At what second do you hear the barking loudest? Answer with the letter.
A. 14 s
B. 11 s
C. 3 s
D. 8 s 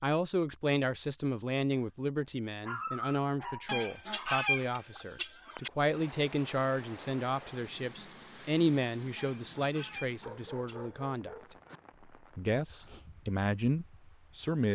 C.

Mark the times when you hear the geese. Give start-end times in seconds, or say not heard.
3.6-5.7, 9.2-11.0.